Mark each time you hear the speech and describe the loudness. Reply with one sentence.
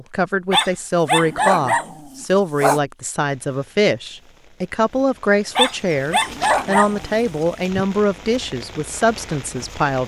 You can hear the speech from 0.0 to 10.0 s, at a steady volume.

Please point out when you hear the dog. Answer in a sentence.
You can hear the dog from 0.5 to 2.8 s and from 5.5 to 7.2 s.